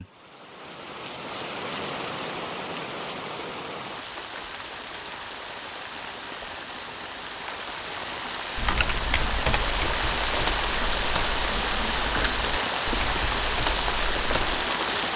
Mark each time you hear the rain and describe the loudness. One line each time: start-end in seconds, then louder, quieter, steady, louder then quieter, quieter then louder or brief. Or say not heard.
0.0-15.1 louder.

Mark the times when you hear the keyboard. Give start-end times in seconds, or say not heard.
8.6-14.6.